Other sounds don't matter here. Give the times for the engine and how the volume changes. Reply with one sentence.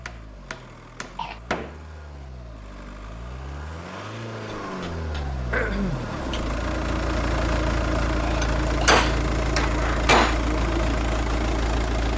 You can hear the engine from 0.0 to 12.1 s, getting louder.